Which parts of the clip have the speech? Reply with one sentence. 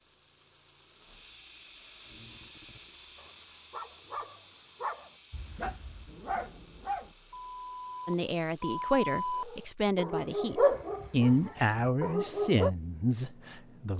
You can hear the speech from 8.1 to 13.9 s.